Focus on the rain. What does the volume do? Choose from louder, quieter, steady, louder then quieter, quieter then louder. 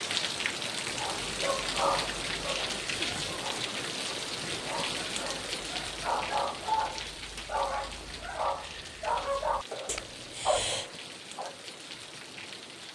quieter.